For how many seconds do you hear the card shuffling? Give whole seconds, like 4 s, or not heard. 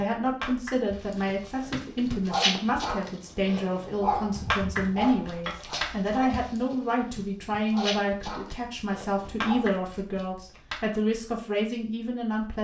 6 s.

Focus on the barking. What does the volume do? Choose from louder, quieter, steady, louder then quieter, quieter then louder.
quieter then louder.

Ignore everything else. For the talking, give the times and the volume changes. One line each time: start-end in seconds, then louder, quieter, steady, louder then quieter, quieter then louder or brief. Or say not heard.
0.0-12.5 steady.